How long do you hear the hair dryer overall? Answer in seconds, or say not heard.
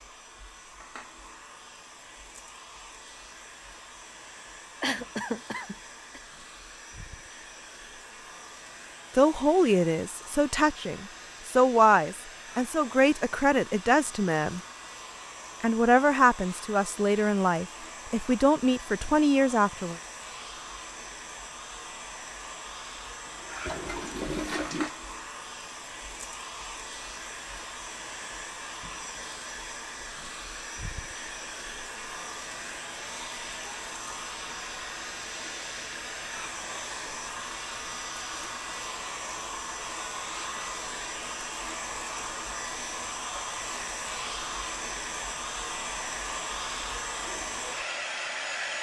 49 s.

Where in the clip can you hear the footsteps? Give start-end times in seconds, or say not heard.
not heard.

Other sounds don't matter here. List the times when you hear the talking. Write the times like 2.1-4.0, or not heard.
9.2-14.6, 15.6-19.9.